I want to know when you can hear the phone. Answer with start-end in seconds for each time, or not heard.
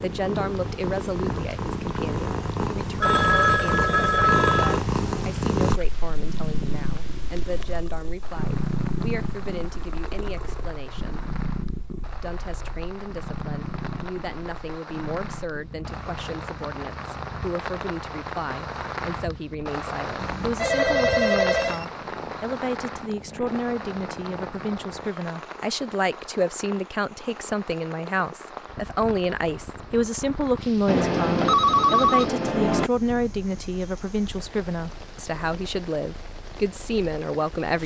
3.0-4.8, 20.2-21.9, 30.9-32.9.